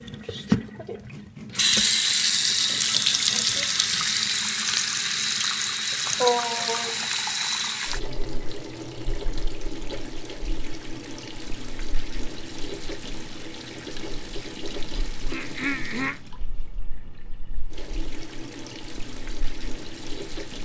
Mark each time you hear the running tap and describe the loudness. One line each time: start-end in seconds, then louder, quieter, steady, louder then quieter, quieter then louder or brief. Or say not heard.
0.1-20.5 quieter.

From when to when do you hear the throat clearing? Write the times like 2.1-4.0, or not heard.
15.2-16.2.